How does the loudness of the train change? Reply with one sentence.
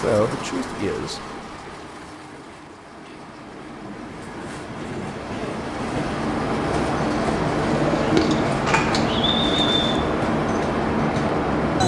The loudness of the train goes up.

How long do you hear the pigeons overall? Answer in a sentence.
The pigeons can be heard for 2 seconds in total.